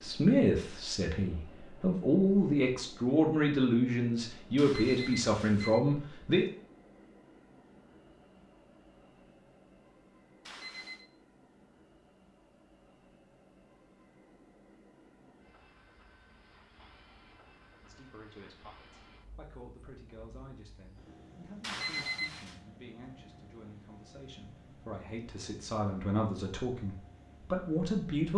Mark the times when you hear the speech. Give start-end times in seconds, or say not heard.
0.0-6.5, 17.8-28.3.